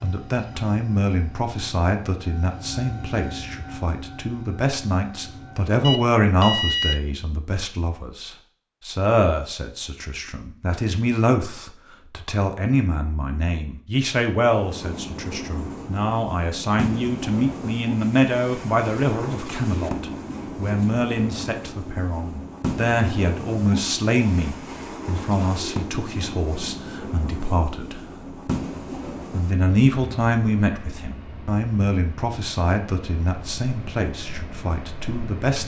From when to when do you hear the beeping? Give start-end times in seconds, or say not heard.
5.8-7.0.